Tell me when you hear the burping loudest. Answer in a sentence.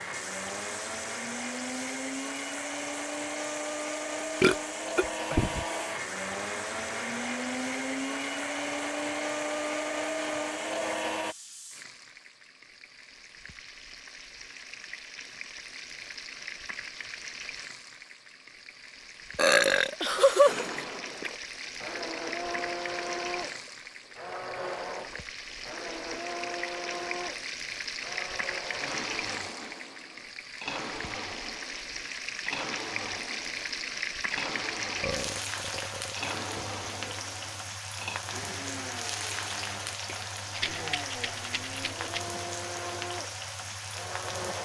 The volume of the burping peaks at 20 seconds.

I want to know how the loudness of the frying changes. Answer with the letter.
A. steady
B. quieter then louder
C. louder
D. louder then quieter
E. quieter
C.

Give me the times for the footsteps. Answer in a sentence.
The footsteps can't be heard in this clip.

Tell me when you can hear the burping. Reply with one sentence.
The burping can be heard from 4.4 to 5.7 s, from 19.4 to 21.3 s and from 35.0 to 37.1 s.